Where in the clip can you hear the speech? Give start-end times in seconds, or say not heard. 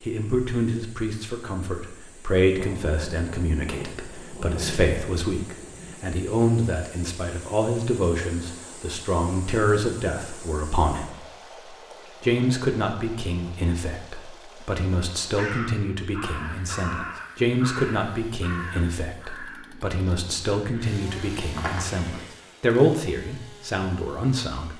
0.0-11.2, 12.2-24.7.